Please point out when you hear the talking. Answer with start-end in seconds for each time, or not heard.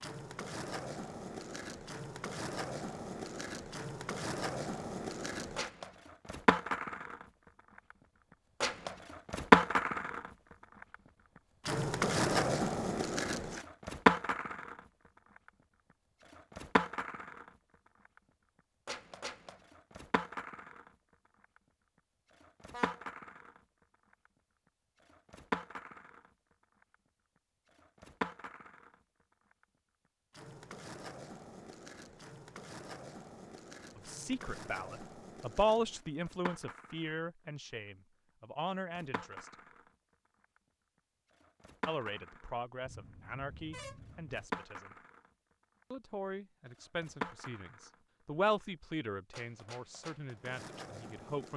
34.0-39.5, 41.9-45.0, 45.9-51.5.